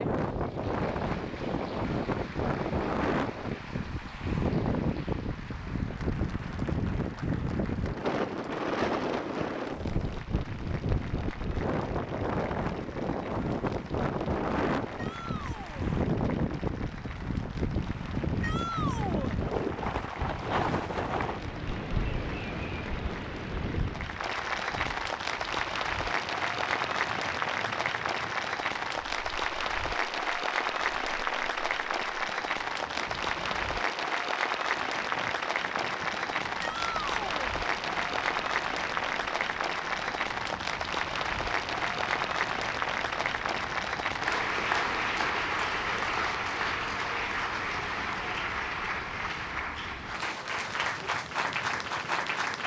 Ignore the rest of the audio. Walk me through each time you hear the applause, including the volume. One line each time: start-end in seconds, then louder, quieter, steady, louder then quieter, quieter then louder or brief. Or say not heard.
0.1-52.6 louder.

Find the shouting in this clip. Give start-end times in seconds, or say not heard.
14.9-15.9, 18.4-19.4, 36.6-37.5.